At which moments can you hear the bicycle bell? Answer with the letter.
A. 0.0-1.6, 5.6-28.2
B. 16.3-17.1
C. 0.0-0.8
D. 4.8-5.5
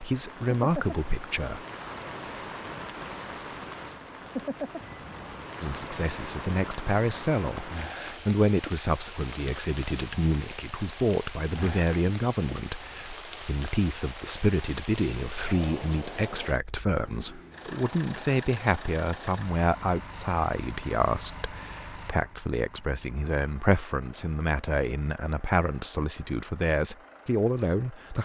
D.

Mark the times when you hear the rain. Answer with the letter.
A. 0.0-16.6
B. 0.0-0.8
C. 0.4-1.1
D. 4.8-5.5
A.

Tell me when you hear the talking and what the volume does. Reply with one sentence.
The talking can be heard briefly from 0.0 to 1.6 s; and from 5.6 to 28.2 s, at a steady volume.